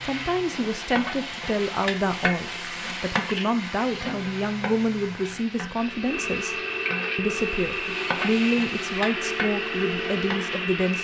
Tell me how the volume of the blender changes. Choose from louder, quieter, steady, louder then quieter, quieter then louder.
louder.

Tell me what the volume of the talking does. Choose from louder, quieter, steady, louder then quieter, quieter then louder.
steady.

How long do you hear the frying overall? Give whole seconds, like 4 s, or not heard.
11 s.